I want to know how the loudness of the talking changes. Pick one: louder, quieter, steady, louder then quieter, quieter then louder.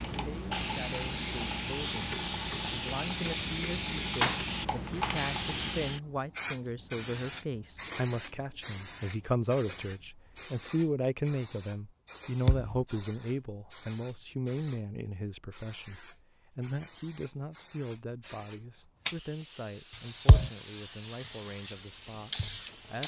louder then quieter.